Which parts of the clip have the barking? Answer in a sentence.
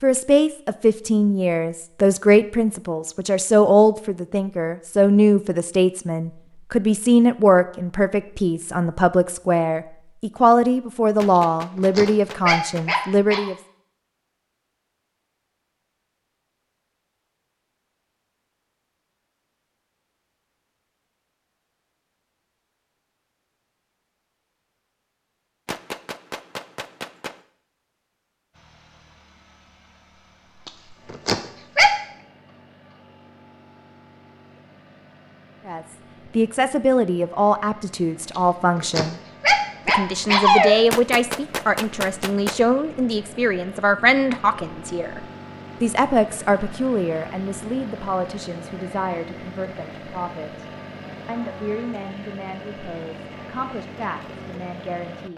You can hear the barking from 11.3 to 13.5 s, from 30.6 to 31.9 s and from 38.4 to 40.8 s.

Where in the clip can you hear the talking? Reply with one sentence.
The talking can be heard from 0.0 to 13.6 s, from 35.6 to 39.2 s, from 39.9 to 50.6 s and from 51.2 to 55.3 s.